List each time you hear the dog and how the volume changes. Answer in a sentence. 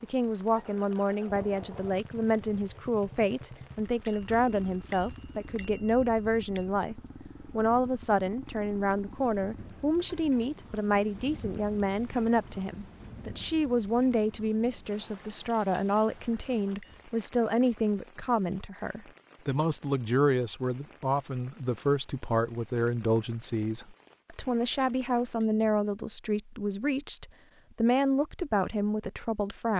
The dog can't be heard in this clip.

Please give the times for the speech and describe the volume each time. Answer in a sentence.
You can hear the speech from 0.0 to 29.7 s, at a steady volume.